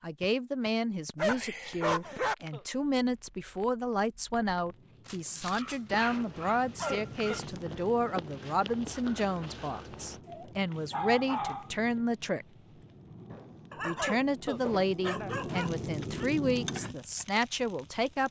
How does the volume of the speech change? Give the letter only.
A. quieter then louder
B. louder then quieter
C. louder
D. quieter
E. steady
E.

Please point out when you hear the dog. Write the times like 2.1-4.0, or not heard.
1.1-2.4, 5.0-7.4, 10.2-11.7, 13.7-14.2, 15.0-16.2.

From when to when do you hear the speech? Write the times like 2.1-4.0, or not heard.
0.0-12.4, 13.8-18.2.